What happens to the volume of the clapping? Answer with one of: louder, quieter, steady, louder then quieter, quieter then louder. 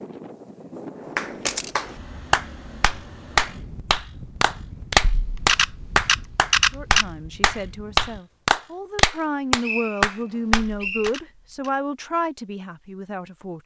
steady.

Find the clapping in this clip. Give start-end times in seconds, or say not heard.
1.1-11.1.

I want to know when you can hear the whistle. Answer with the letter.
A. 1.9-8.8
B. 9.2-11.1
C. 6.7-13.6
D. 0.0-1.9
B.